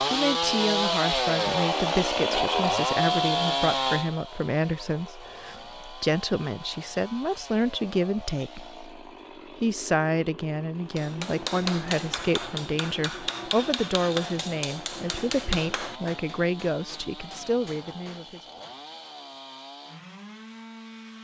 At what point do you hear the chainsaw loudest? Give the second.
3 s.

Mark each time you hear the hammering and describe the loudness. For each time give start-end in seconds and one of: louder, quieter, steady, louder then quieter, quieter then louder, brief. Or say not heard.
10.9-18.8 quieter.